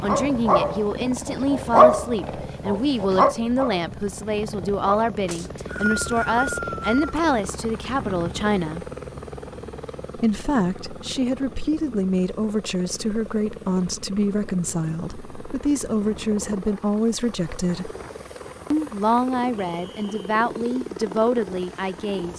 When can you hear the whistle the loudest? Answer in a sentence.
The volume of the whistle peaks at 6 seconds.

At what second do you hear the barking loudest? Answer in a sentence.
The volume of the barking peaks at 2 seconds.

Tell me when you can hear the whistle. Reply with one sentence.
You can hear the whistle from 5.3 to 7.0 s and from 19.6 to 20.3 s.